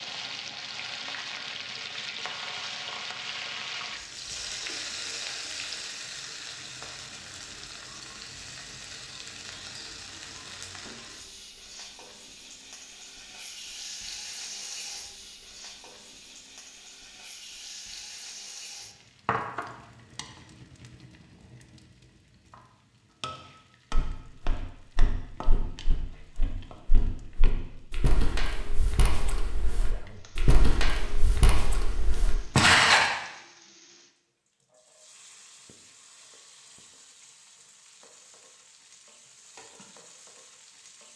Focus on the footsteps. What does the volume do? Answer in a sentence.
The loudness of the footsteps goes up.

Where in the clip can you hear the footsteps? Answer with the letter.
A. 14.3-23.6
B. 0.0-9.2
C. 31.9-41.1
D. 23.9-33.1
D.